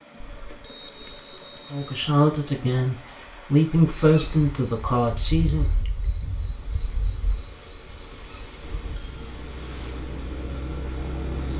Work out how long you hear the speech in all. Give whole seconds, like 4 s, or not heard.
4 s.